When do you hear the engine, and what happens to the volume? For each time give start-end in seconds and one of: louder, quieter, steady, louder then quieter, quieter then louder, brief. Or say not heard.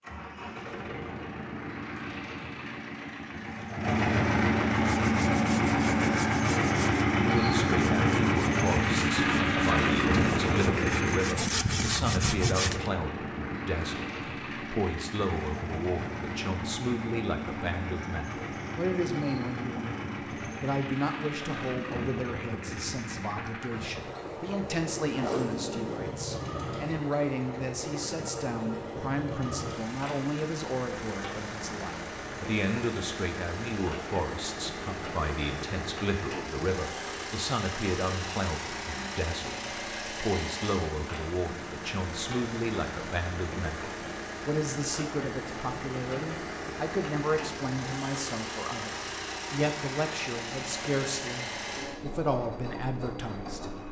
0.0-53.8 quieter.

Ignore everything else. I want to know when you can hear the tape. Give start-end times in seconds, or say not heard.
25.1-26.1.